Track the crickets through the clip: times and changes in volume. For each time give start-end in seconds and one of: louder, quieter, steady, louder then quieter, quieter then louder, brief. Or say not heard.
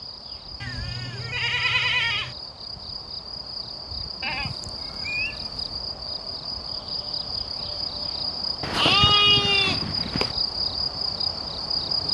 0.0-12.0 louder.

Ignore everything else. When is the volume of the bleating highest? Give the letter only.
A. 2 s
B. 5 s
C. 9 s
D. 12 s
C.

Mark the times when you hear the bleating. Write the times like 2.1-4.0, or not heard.
0.6-2.4, 4.2-5.5, 8.6-10.3.